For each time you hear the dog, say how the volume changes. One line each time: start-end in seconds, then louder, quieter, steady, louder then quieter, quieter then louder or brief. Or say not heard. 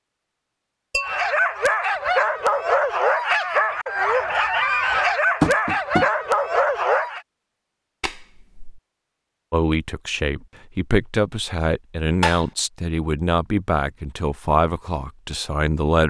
1.0-7.2 steady.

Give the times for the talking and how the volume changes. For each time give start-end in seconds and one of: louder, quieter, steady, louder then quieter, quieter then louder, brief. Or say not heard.
9.5-16.0 steady.